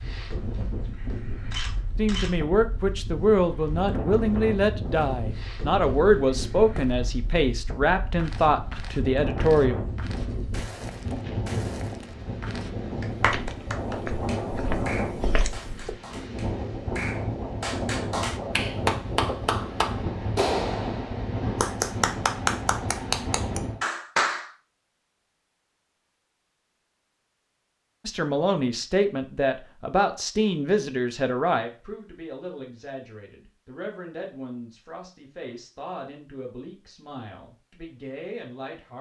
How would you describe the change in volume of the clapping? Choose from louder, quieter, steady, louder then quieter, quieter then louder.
louder.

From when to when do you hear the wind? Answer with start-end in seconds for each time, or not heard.
0.0-23.8.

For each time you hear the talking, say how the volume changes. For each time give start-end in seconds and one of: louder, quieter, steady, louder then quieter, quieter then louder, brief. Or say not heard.
1.9-9.8 steady
28.1-38.9 quieter.